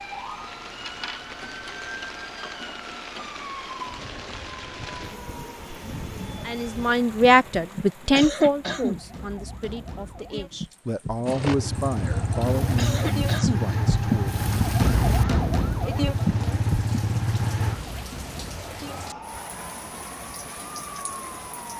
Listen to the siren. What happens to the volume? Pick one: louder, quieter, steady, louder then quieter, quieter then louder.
louder then quieter.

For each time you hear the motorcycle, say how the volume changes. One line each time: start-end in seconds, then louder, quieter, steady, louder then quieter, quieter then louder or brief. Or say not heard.
11.2-17.8 steady.